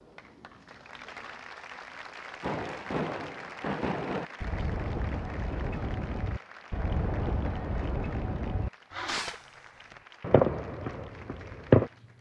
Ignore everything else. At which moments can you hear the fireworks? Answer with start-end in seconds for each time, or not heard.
2.4-11.9.